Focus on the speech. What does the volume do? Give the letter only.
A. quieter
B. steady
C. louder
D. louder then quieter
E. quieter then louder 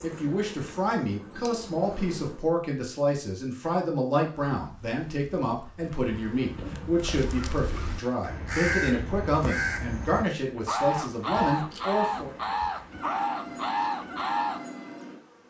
B.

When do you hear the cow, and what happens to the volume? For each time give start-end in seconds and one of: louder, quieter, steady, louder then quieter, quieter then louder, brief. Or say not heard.
not heard.